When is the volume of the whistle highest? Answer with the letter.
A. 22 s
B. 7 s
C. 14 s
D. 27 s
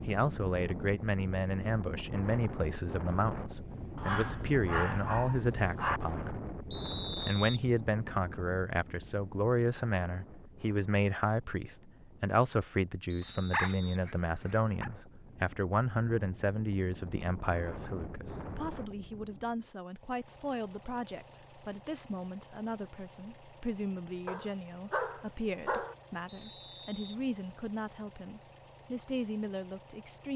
B.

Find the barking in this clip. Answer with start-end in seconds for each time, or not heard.
4.0-6.0, 13.2-14.9, 24.2-25.9.